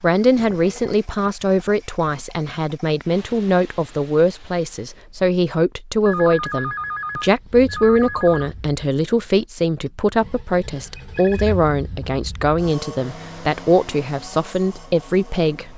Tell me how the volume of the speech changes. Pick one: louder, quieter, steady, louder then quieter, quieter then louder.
steady.